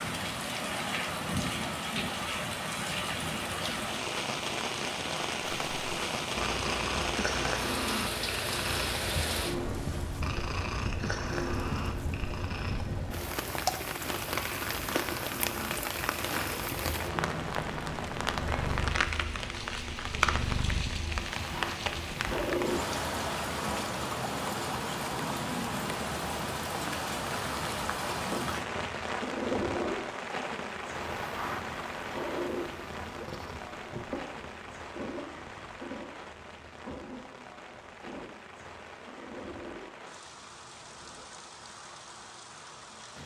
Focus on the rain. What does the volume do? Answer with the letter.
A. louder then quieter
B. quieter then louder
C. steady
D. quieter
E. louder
D.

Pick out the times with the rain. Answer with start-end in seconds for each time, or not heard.
0.0-43.2.